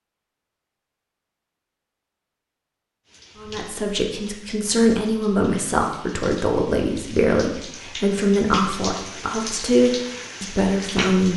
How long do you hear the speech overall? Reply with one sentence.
You can hear the speech for 8 seconds altogether.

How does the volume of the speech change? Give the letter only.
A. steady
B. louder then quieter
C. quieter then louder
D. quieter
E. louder
A.